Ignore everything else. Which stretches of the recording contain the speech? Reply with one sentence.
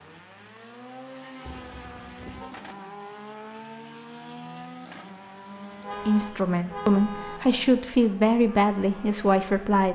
The speech can be heard from 6.0 to 9.9 s.